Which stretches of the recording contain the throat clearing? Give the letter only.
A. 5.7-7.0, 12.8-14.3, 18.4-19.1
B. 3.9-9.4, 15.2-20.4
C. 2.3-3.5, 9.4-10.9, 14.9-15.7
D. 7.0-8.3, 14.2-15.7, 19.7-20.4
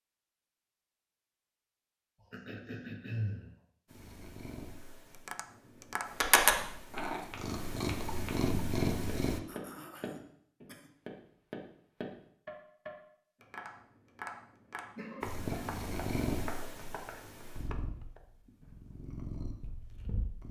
C.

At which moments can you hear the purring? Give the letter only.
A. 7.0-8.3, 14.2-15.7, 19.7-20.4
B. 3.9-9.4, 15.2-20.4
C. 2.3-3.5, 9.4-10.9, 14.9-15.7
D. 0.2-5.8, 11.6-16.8
B.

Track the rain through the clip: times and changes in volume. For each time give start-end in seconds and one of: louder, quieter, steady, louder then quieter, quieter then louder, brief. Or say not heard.
not heard.